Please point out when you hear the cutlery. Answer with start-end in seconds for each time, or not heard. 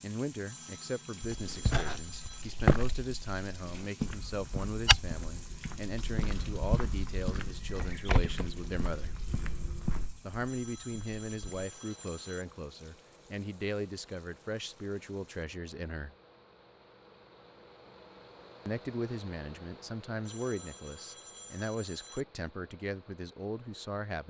not heard.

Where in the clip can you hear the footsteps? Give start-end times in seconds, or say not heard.
1.3-11.7.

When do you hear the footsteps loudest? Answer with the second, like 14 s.
3 s.